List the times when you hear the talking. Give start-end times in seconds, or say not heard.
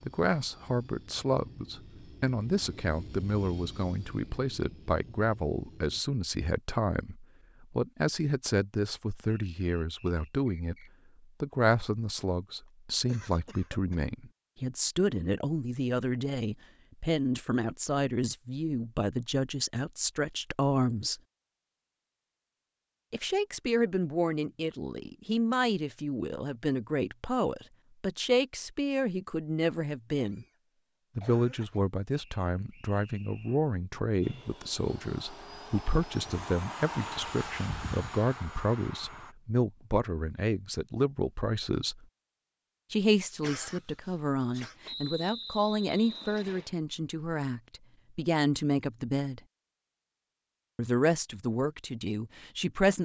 0.0-21.2, 23.1-30.4, 31.1-42.0, 42.9-49.4, 50.8-53.0.